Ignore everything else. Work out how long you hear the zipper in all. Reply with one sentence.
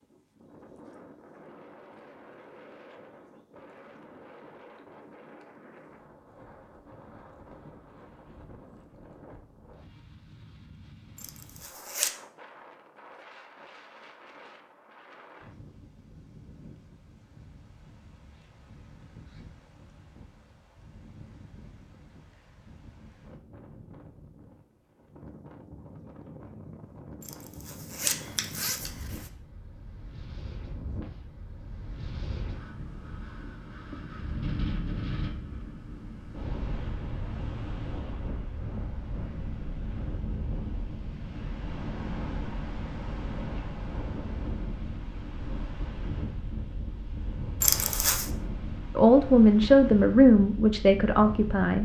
You can hear the zipper for 4 seconds altogether.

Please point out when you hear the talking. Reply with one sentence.
The talking can be heard from 49.0 to 51.8 s.